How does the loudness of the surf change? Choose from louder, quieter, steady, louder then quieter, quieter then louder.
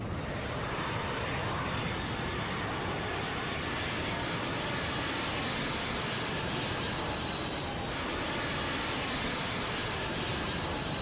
steady.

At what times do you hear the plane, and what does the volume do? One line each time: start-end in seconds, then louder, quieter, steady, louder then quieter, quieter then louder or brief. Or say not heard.
0.0-10.9 steady.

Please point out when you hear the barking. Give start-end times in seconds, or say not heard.
not heard.